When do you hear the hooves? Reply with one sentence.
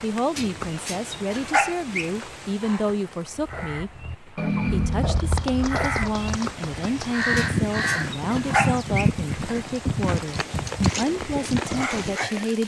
The hooves can be heard from 4.9 to 12.6 s.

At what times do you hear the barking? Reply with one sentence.
The barking can be heard from 0.3 to 2.1 s and from 7.3 to 9.1 s.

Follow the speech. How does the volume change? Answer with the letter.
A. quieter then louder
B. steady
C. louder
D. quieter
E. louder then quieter
B.